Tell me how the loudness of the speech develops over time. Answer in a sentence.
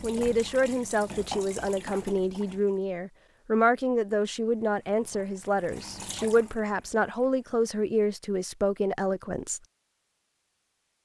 The loudness of the speech stays about the same.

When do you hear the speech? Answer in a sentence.
The speech can be heard from 0.0 to 9.6 s.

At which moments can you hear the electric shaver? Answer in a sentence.
The electric shaver can't be heard in this clip.